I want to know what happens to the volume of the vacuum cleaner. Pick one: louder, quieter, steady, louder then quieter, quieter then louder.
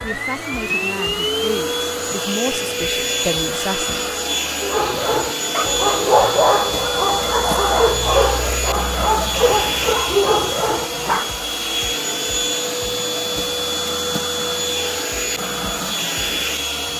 steady.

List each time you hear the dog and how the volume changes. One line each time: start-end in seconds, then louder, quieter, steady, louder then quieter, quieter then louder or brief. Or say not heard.
4.6-11.3 steady.